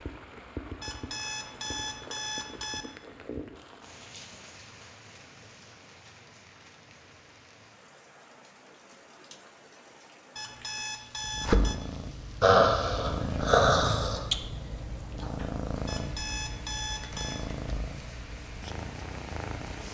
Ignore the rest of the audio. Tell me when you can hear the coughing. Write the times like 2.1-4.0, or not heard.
not heard.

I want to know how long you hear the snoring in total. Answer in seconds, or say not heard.
2 s.